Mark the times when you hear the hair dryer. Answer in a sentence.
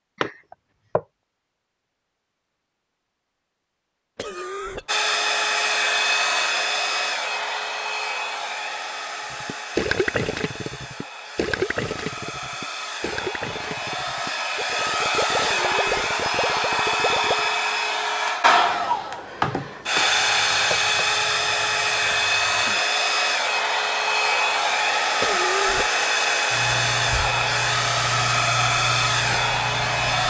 The hair dryer can be heard from 4.8 to 30.2 s.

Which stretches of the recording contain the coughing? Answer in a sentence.
You can hear the coughing from 4.2 to 4.9 s, from 15.4 to 15.9 s and from 25.2 to 25.9 s.